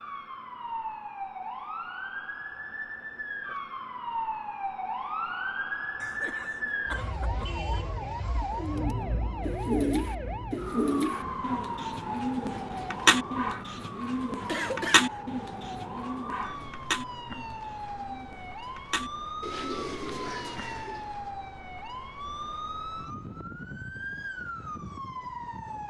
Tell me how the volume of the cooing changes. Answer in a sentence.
The loudness of the cooing goes down.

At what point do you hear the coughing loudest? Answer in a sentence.
The volume of the coughing peaks at 15 seconds.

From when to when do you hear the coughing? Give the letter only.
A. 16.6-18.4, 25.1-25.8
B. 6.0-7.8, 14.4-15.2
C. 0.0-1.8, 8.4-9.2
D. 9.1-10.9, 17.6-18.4
B.